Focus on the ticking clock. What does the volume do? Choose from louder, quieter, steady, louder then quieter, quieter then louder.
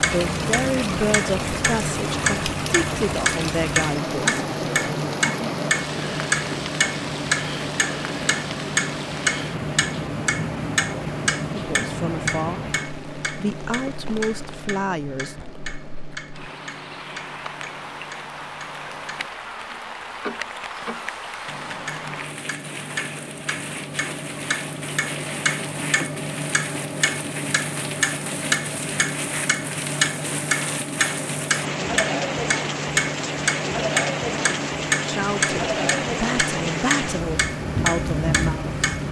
quieter then louder.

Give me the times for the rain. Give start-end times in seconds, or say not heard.
0.0-39.0.